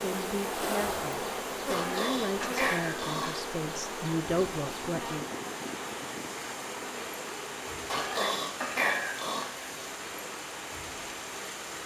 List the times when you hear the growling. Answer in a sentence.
The growling can be heard from 1.7 to 3.4 s and from 7.8 to 9.4 s.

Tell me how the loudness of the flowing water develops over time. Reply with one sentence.
The volume of the flowing water stays about the same.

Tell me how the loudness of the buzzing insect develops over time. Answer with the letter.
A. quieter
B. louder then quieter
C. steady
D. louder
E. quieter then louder
A.